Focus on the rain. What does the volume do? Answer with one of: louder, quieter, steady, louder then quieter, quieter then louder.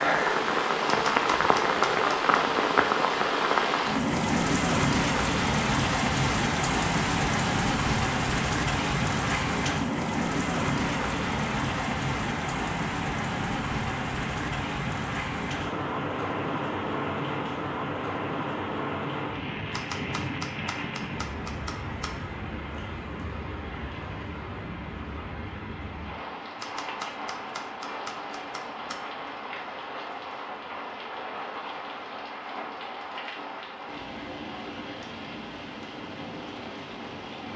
quieter.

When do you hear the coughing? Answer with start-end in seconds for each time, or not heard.
not heard.